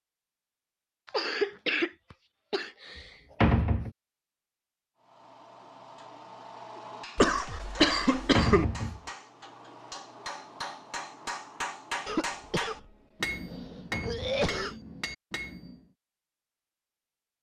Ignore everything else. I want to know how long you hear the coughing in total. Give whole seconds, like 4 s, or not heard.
6 s.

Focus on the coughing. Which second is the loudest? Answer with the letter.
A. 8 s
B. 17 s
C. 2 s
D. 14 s
A.